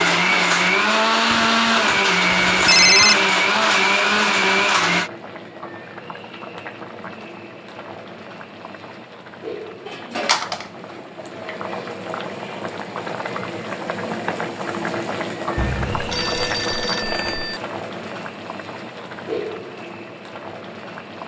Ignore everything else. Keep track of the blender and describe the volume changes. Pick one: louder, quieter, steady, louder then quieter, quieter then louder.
steady.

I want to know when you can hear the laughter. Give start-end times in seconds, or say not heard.
not heard.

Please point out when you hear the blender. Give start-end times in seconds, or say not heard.
0.0-5.1.